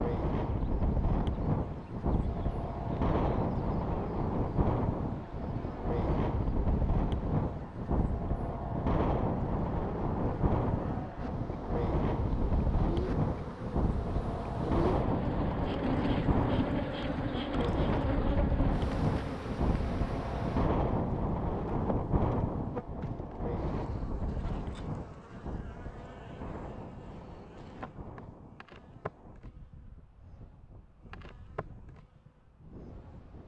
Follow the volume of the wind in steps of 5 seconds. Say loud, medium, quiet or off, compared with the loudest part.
loud, loud, loud, loud, loud, quiet, quiet.